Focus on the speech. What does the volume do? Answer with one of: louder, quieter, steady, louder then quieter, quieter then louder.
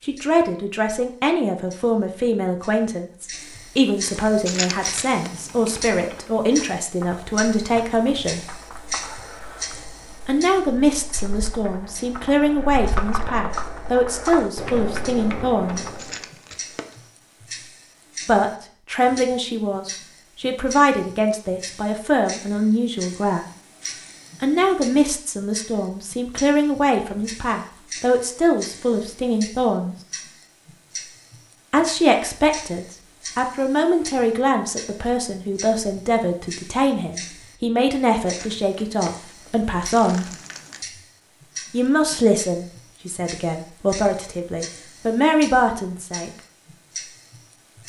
steady.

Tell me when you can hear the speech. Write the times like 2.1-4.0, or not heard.
0.0-8.6, 10.2-15.8, 18.2-23.4, 24.4-29.9, 31.7-40.3, 41.7-46.3.